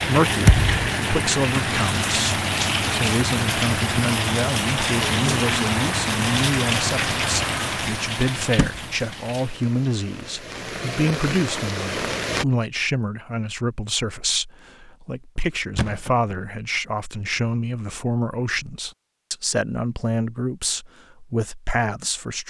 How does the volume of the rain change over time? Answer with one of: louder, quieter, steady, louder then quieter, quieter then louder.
quieter.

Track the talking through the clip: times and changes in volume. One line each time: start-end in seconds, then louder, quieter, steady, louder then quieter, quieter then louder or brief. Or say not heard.
0.0-22.4 steady.